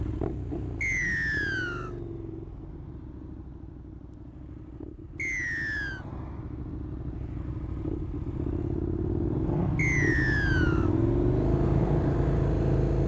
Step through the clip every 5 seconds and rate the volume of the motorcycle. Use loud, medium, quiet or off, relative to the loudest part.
quiet, medium, loud.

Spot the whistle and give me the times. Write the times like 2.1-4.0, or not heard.
0.8-1.9, 5.2-6.0, 9.8-10.9.